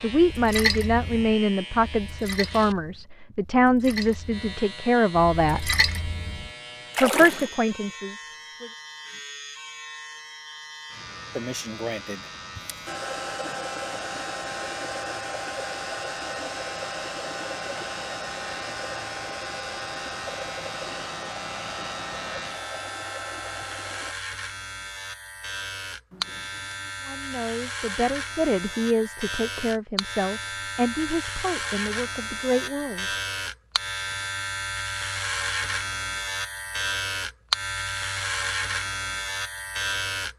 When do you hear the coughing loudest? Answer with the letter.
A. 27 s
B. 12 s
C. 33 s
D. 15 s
B.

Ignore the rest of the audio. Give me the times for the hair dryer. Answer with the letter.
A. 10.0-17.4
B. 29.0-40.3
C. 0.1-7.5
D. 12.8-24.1
D.